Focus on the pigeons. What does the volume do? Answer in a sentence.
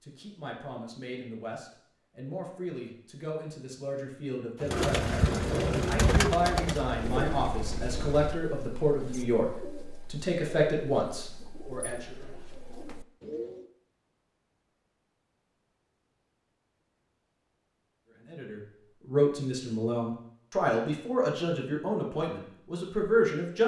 The volume of the pigeons goes down.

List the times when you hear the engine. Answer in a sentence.
The engine can be heard from 4.7 to 8.3 s.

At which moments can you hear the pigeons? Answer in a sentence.
The pigeons can be heard from 4.6 to 13.7 s.